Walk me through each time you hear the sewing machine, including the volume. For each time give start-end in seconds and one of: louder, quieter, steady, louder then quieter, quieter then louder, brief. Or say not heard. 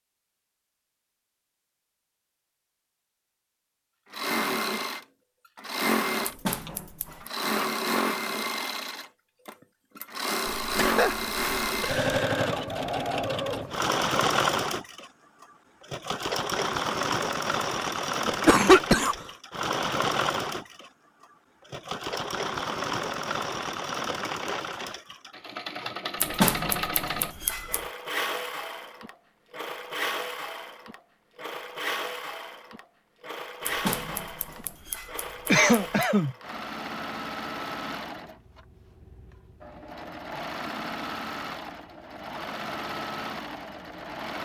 4.1-44.3 quieter.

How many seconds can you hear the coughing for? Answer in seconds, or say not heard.
4 s.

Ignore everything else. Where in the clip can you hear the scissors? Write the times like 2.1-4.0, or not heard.
6.2-7.3, 26.2-27.8, 33.6-36.0.